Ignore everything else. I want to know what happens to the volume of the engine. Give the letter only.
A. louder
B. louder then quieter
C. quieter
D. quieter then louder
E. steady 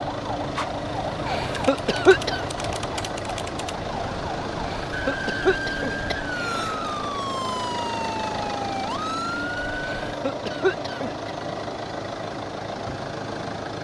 E.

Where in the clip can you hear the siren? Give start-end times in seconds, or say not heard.
0.0-10.2.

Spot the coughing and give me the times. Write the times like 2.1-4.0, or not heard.
1.2-2.5, 4.7-6.8, 9.8-11.3.